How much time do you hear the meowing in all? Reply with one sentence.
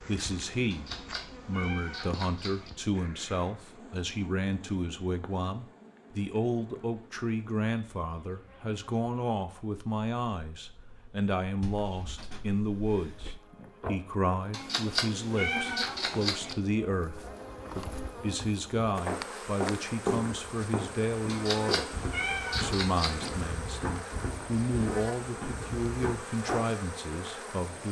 The meowing can be heard for 6 seconds in total.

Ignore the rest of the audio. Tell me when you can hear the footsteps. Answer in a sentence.
The footsteps can be heard from 19.1 to 26.6 s.